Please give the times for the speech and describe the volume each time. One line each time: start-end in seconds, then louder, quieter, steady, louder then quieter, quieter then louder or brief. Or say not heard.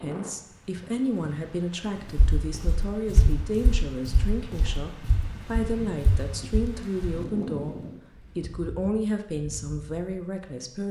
0.0-10.8 steady.